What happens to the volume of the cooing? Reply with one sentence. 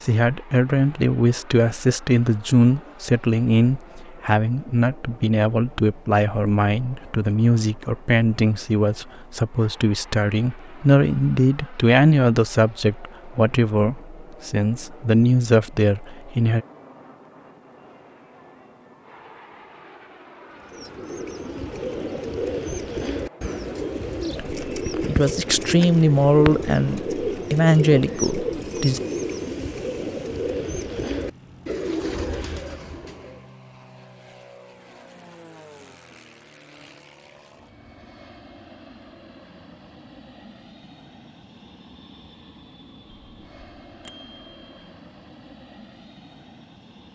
The loudness of the cooing stays about the same.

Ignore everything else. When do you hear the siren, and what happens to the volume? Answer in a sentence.
The siren can't be heard in this clip.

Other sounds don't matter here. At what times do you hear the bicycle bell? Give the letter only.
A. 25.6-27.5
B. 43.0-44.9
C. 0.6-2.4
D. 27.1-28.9
B.